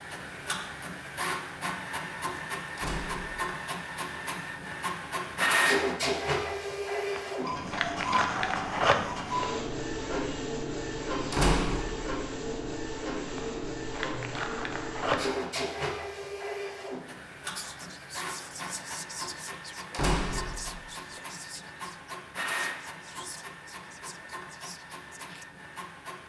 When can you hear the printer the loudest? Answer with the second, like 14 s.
6 s.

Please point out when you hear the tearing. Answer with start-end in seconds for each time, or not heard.
7.0-9.6, 13.3-15.4.